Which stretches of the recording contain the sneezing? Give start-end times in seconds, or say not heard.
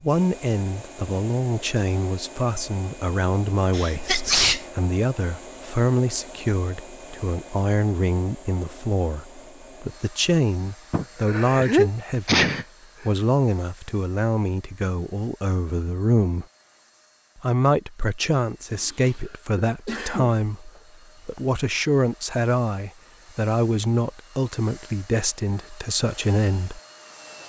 3.7-4.7, 10.9-13.1, 18.6-20.8.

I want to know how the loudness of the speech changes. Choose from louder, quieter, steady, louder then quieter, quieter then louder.
steady.